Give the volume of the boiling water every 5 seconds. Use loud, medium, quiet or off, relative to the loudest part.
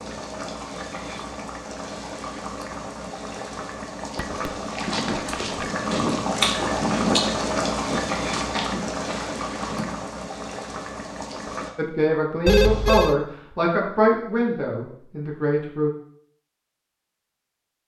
medium, loud, medium, off.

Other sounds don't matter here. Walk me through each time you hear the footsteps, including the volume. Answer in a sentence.
You can hear the footsteps from 4.7 to 9.9 s, getting louder then quieter.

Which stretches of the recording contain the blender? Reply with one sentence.
The blender can't be heard in this clip.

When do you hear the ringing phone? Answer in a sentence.
You can hear the ringing phone from 4.2 to 5.7 s and from 12.4 to 13.2 s.